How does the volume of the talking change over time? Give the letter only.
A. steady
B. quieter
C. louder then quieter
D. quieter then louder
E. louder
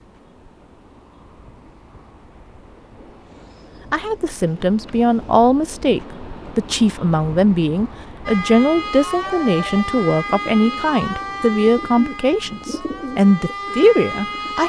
A.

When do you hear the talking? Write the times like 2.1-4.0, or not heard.
3.9-14.6.